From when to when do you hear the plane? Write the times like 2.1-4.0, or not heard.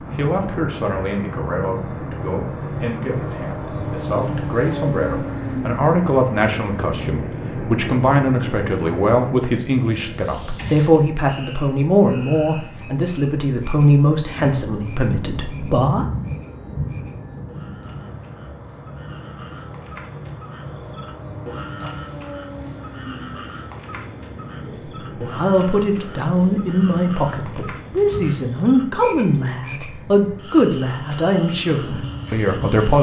0.0-32.9.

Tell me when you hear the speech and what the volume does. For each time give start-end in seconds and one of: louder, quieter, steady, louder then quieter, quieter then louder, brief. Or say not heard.
0.1-16.1 louder
25.2-32.9 steady.